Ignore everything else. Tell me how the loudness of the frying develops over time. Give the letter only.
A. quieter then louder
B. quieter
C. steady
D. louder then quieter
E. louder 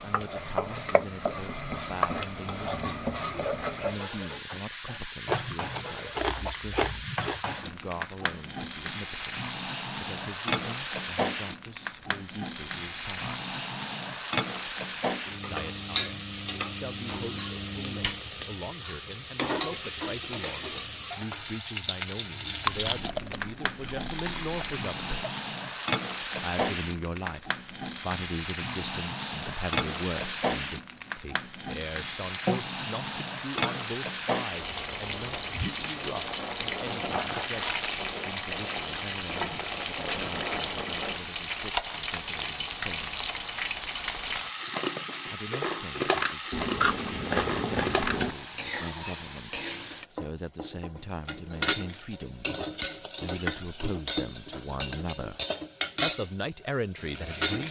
C.